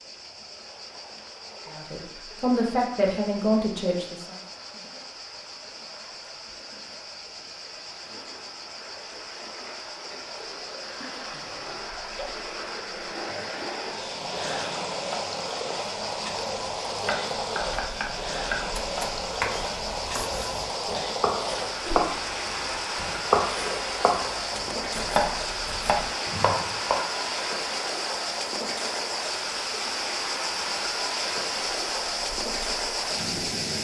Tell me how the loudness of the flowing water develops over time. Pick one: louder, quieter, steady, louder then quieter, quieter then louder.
louder.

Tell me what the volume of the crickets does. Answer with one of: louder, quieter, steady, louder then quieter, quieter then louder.
louder.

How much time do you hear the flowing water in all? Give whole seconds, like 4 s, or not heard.
34 s.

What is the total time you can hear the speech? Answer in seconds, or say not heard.
3 s.